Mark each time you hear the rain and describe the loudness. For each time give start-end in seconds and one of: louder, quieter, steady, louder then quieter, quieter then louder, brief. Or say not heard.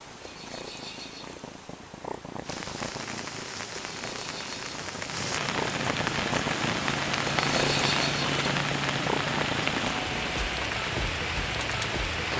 2.4-12.3 louder.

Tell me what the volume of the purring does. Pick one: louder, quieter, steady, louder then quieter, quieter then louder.
louder then quieter.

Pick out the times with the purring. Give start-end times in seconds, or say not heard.
0.0-12.3.